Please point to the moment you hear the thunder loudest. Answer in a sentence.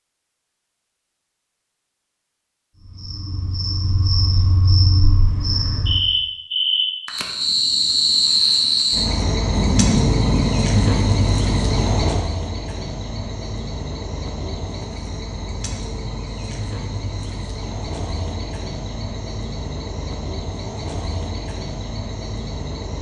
The volume of the thunder peaks at 10 seconds.